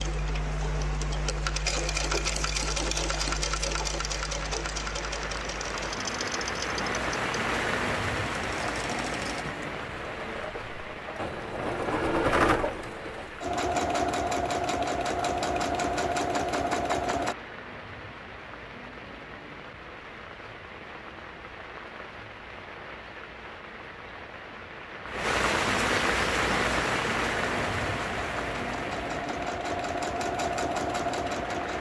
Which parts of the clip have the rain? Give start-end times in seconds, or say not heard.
0.0-31.7.